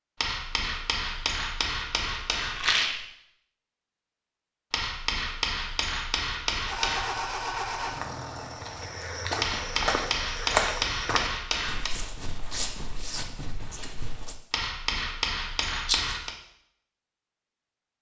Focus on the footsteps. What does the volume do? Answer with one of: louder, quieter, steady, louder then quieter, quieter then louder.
louder then quieter.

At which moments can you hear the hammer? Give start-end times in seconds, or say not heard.
0.2-2.6, 4.7-7.2, 9.4-11.9, 14.5-16.4.